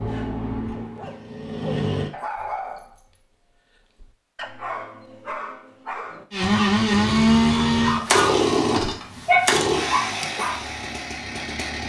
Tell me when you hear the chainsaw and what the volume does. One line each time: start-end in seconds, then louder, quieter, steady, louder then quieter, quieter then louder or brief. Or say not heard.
0.0-2.1 brief
6.3-11.8 quieter.